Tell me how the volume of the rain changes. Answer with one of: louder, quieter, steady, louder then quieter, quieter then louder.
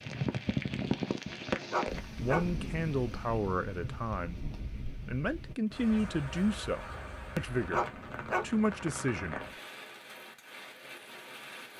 quieter.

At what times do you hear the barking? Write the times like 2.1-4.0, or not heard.
1.7-2.5, 7.7-8.6.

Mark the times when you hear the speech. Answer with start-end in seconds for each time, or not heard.
2.1-9.4.